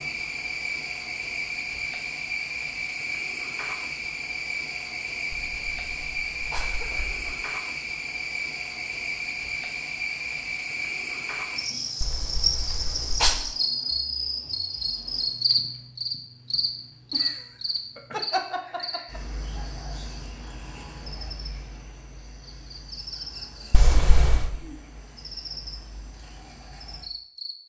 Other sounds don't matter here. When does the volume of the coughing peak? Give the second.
13 s.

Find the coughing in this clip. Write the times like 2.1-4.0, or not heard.
5.3-7.3, 12.0-13.4, 23.7-24.5.